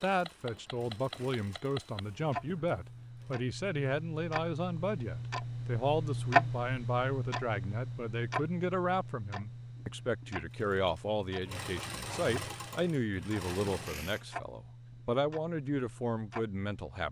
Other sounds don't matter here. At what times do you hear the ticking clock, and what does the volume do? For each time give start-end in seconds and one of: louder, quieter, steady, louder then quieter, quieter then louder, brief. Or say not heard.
0.1-17.0 louder then quieter.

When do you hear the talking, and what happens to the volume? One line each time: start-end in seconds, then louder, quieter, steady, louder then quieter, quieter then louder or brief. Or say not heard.
0.0-17.0 steady.